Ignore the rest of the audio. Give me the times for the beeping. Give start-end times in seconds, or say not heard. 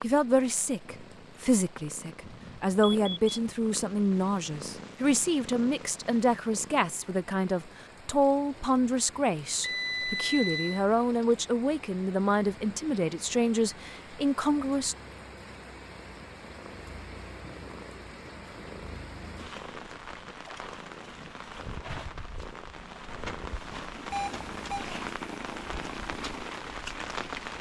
2.2-3.4, 9.6-10.8, 24.1-24.9.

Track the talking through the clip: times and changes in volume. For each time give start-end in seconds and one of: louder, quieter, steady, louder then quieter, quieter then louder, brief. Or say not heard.
0.0-14.9 steady.